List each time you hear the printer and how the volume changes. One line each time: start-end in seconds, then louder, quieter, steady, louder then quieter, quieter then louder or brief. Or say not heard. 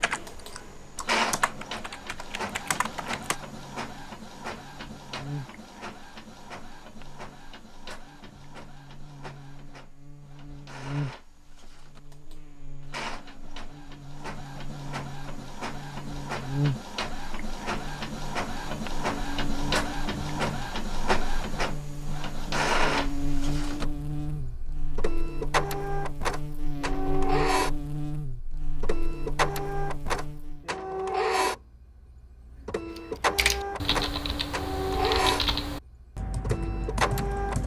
0.1-37.6 quieter then louder.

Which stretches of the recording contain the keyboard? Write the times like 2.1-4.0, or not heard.
0.0-3.4, 32.9-37.6.